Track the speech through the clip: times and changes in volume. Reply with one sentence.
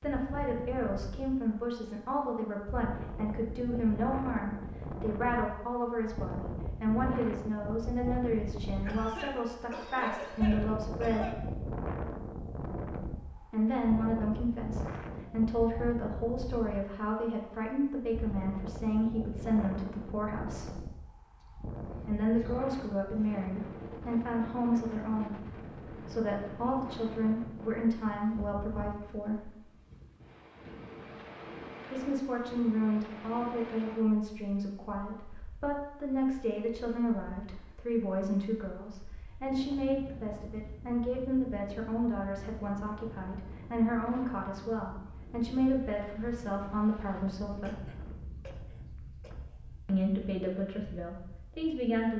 The speech can be heard from 0.0 to 11.4 s, at a steady volume; from 13.4 to 20.8 s, at a steady volume; from 22.0 to 29.6 s, at a steady volume; from 31.9 to 47.9 s, at a steady volume; and briefly from 49.9 to 52.1 s.